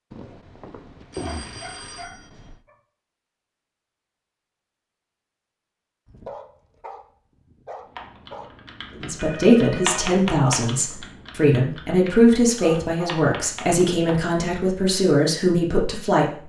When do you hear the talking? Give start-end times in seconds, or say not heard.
9.0-16.4.